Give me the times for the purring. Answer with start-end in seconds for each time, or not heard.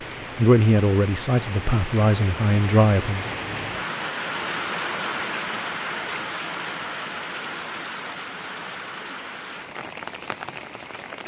not heard.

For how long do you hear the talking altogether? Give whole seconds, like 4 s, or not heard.
3 s.